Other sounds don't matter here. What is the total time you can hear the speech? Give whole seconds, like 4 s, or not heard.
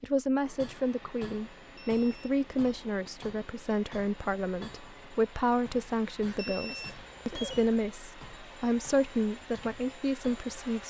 11 s.